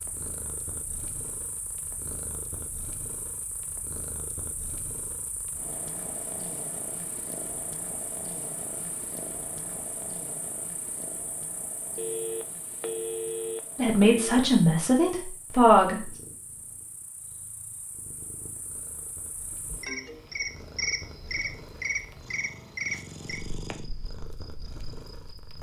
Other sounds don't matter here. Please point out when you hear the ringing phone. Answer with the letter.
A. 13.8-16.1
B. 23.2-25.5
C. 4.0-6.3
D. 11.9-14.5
D.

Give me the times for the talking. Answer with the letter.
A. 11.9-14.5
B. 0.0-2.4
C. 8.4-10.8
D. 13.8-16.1
D.